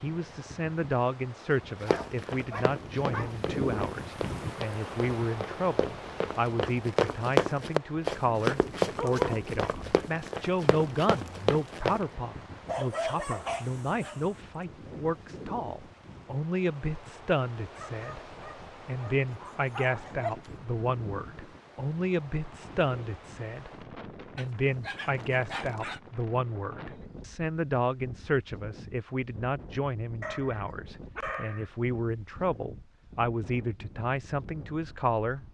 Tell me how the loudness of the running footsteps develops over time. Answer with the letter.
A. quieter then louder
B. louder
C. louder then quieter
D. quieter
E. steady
C.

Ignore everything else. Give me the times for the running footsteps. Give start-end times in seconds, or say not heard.
1.8-12.0.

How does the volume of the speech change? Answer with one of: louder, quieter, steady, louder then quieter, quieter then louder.
steady.